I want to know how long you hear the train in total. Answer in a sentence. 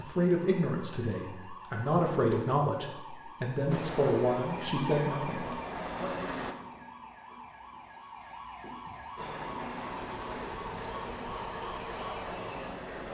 You can hear the train for 7 seconds altogether.